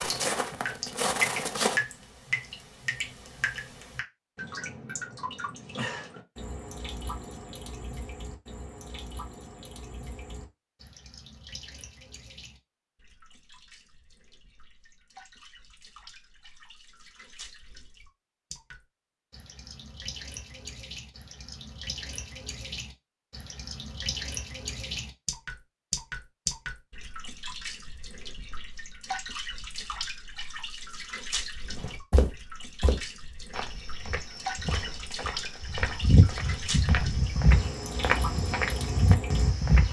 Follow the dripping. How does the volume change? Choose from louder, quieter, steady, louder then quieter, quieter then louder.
quieter then louder.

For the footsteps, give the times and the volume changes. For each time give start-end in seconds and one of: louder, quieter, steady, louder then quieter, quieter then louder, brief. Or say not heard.
0.0-1.8 brief
31.8-39.8 quieter then louder.